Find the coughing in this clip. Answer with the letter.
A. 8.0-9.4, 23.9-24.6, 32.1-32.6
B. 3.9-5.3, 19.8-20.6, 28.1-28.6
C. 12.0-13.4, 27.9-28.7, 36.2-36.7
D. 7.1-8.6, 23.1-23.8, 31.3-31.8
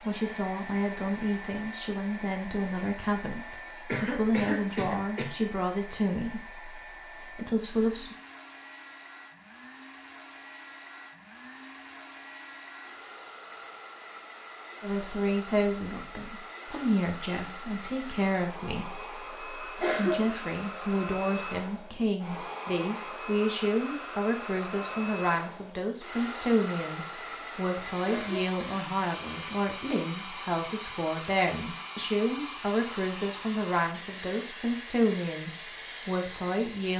B.